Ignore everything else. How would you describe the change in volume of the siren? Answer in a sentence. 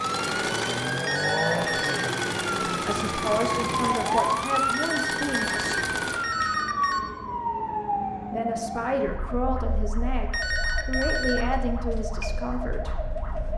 The loudness of the siren goes down.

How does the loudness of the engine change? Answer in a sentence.
The loudness of the engine stays about the same.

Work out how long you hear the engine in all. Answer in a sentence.
The engine can be heard for 6 seconds in total.